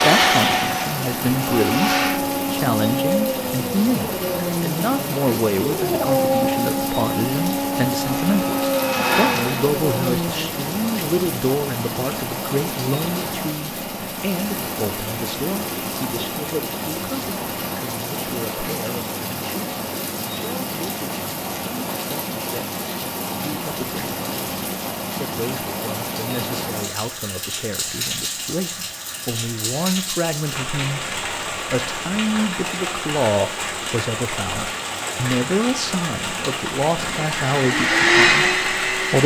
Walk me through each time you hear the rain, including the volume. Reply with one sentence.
You can hear the rain from 0.1 to 39.2 s, at a steady volume.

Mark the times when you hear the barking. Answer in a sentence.
The barking can be heard from 1.3 to 10.8 s.